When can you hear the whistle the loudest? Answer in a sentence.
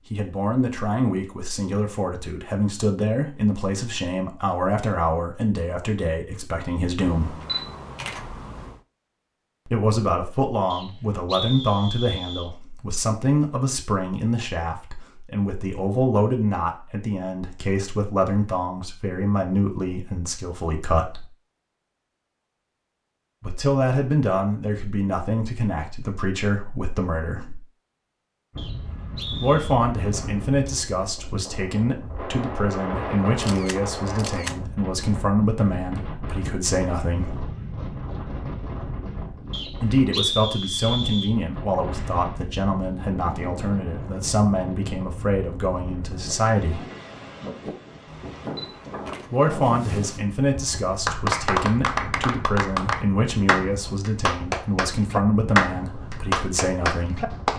The volume of the whistle peaks at 40 seconds.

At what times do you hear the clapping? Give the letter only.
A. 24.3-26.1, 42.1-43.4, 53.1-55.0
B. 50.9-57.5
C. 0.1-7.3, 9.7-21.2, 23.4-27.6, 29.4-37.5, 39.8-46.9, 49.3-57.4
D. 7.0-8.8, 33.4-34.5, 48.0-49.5
B.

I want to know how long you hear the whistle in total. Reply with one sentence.
The whistle can be heard for 5 seconds in total.